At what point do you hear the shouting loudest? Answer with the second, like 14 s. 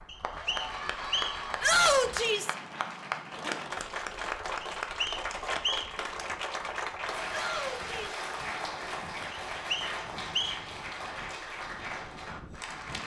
2 s.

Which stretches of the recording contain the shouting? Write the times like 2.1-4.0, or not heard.
1.6-2.5, 7.3-8.2.